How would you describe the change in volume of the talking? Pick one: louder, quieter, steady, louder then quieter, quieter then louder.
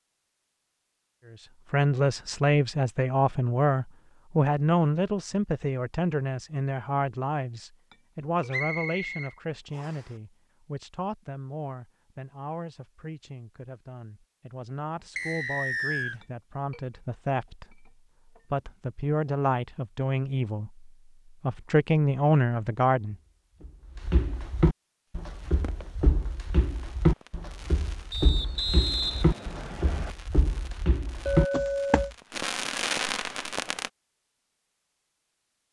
quieter then louder.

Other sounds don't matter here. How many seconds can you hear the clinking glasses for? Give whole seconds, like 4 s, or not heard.
4 s.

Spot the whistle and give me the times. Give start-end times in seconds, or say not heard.
8.5-10.0, 15.2-16.2, 28.1-30.1.